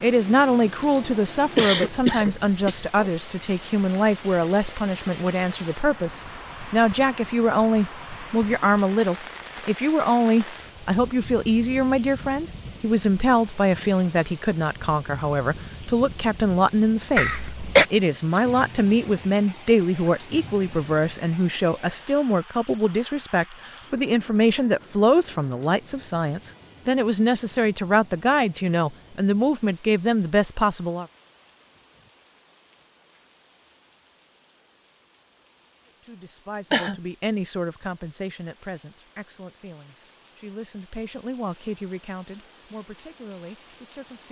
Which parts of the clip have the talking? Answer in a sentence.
The talking can be heard from 0.0 to 31.1 s and from 35.9 to 44.2 s.